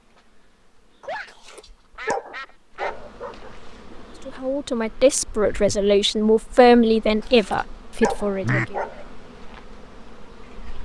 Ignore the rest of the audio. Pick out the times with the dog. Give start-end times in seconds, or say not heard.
1.2-3.5, 7.2-9.1.